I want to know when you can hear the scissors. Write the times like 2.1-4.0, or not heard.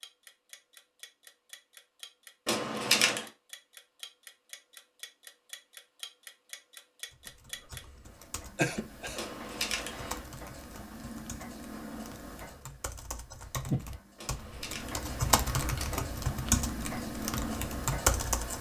2.5-3.2, 9.2-10.2, 14.2-16.0.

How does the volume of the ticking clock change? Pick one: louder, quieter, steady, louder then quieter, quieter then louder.
louder.